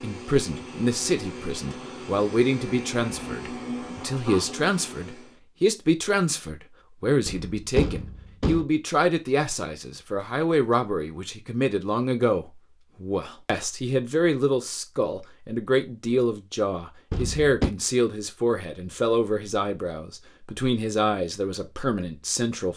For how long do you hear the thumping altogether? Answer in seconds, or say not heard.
2 s.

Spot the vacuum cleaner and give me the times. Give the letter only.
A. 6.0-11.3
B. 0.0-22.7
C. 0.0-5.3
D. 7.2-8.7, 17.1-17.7
C.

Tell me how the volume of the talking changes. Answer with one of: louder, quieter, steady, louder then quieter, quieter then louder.
steady.